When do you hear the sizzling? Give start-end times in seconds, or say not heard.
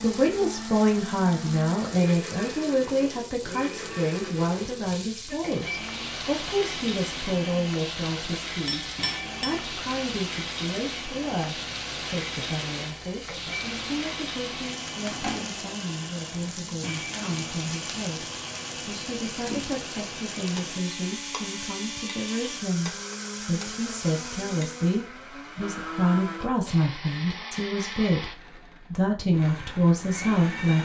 0.0-25.1.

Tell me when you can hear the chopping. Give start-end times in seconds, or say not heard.
not heard.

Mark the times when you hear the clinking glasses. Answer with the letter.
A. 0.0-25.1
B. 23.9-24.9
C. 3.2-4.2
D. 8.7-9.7
D.